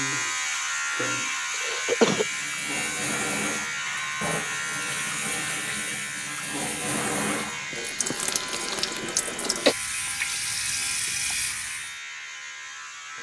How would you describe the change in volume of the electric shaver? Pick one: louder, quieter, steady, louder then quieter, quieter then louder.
quieter.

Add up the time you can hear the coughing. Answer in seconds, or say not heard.
2 s.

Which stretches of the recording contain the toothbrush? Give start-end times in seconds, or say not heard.
not heard.